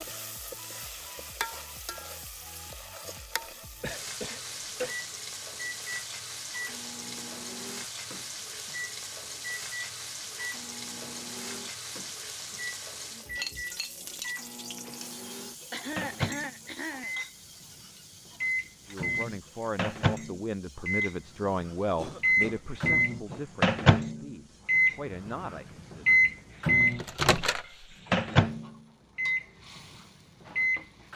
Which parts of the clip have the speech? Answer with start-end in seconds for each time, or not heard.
18.9-26.4.